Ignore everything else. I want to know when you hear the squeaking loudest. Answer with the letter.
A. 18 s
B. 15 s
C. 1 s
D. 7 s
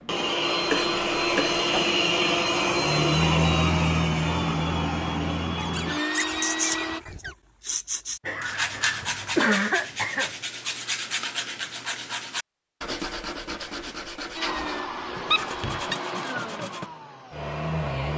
B.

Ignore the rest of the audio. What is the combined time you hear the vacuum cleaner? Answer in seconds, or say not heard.
11 s.